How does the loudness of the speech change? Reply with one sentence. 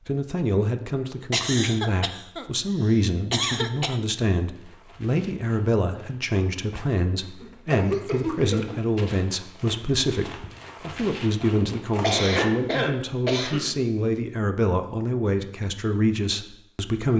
The volume of the speech stays about the same.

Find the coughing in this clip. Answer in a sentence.
You can hear the coughing from 1.3 to 2.5 s, from 3.3 to 4.0 s, from 7.4 to 8.8 s and from 12.0 to 13.8 s.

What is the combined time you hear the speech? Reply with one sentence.
You can hear the speech for 17 seconds altogether.